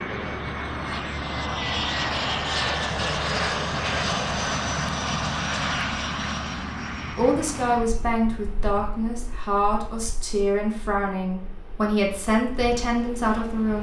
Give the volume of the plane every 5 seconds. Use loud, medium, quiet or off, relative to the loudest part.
loud, medium, quiet.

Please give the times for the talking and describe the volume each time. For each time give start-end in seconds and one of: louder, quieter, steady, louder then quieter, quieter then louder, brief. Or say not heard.
7.2-13.7 steady.